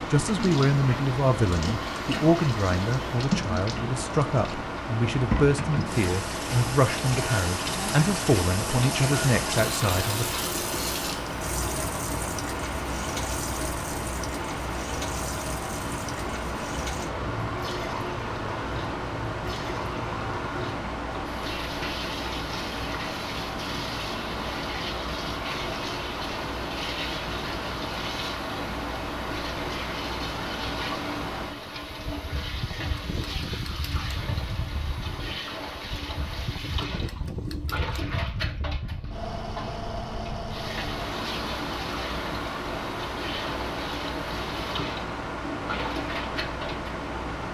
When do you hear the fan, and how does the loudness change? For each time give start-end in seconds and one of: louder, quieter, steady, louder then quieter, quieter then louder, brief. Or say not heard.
0.0-47.4 steady.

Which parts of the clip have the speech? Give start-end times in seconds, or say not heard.
0.1-10.2.